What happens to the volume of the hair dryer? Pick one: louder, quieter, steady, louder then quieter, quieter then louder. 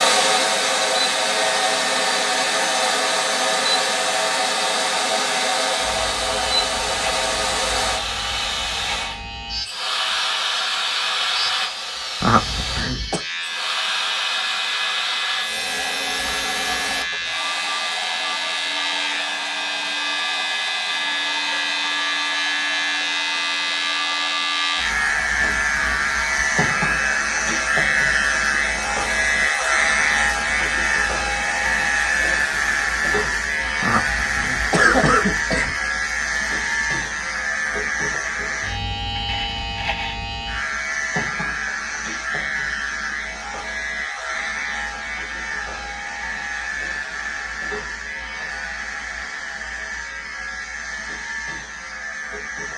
quieter.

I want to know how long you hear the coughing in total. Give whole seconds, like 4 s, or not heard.
3 s.